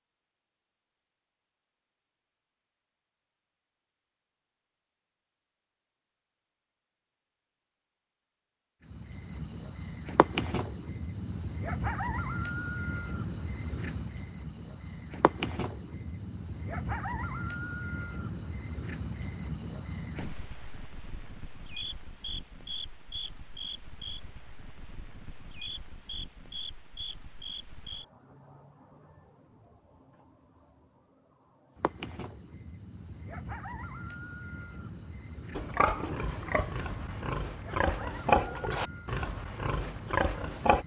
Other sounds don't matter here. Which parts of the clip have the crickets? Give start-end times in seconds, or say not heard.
8.8-40.8.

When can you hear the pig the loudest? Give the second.
38 s.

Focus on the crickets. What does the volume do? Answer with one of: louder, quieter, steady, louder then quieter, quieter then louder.
quieter.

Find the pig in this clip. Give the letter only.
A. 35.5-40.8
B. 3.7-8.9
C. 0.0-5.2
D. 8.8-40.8
A.